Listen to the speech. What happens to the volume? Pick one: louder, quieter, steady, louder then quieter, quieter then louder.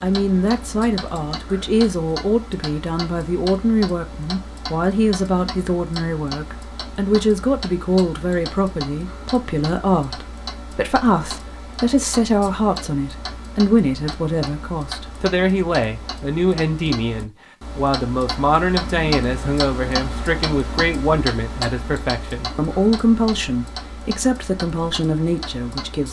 steady.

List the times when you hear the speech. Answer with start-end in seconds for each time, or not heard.
0.0-26.0.